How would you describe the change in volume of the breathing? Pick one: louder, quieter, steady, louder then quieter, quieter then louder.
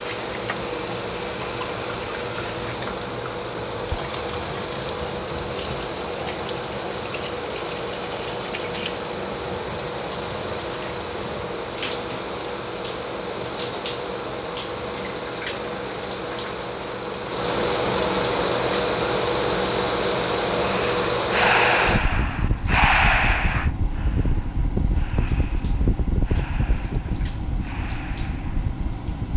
quieter.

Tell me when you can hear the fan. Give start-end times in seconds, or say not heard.
0.0-29.3.